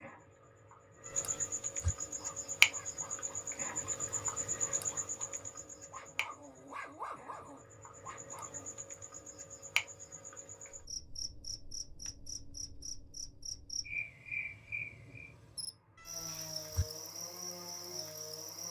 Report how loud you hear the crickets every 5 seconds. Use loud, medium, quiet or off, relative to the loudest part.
loud, medium, medium, medium.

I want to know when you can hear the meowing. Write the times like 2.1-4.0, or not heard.
1.1-1.9, 15.9-16.9.